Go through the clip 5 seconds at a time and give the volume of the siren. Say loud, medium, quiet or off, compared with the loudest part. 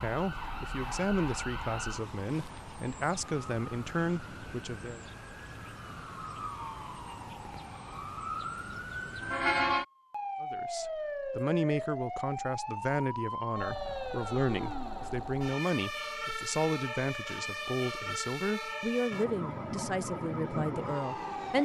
medium, loud, loud, loud, loud.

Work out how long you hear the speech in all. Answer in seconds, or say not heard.
16 s.